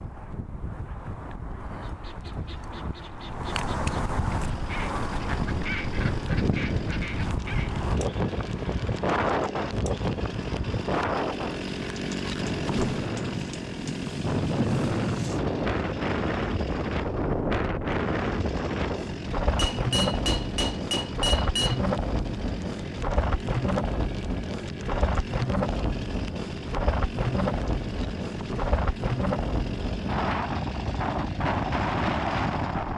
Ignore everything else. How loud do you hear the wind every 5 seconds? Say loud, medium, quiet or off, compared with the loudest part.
medium, loud, loud, loud, loud, loud, loud.